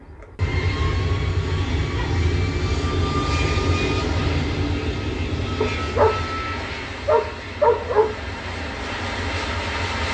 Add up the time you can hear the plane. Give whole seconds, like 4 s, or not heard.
10 s.